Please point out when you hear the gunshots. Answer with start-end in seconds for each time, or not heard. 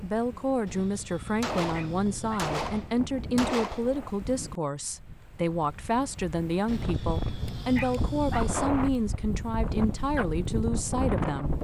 1.4-4.0.